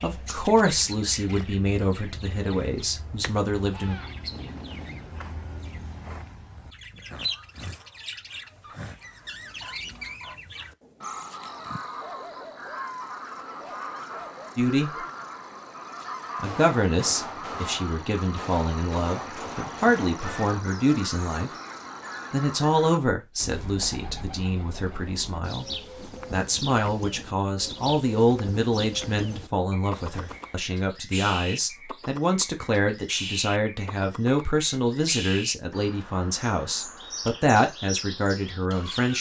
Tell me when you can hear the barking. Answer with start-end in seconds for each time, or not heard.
7.2-14.5.